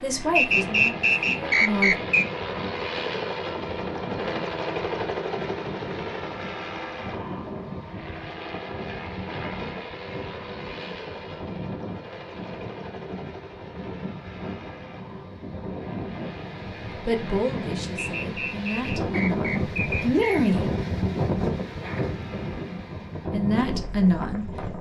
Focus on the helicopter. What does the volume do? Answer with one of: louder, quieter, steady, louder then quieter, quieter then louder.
quieter.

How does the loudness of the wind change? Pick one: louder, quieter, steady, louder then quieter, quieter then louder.
louder.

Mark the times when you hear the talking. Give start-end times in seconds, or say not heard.
0.0-1.9, 17.1-20.6, 23.3-24.5.